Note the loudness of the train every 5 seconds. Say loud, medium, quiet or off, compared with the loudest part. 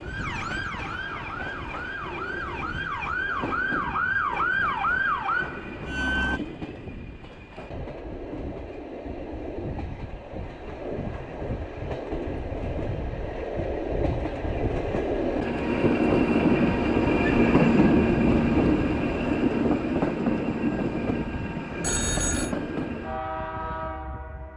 quiet, quiet, medium, loud, medium.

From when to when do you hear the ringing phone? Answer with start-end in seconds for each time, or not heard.
21.8-22.6.